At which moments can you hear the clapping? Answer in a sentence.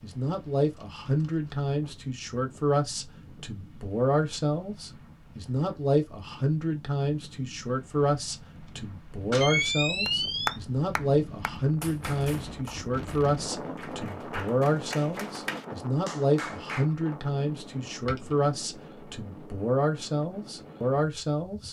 You can hear the clapping from 10.1 to 16.9 s.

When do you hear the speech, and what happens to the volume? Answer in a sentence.
The speech can be heard from 0.0 to 21.6 s, at a steady volume.